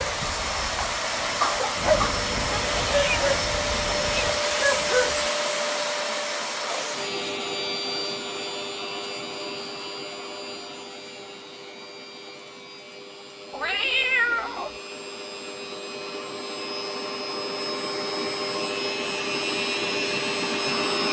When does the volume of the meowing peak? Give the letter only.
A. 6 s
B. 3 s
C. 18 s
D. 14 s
D.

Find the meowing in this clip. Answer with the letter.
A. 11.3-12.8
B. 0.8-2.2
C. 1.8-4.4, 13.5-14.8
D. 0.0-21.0
C.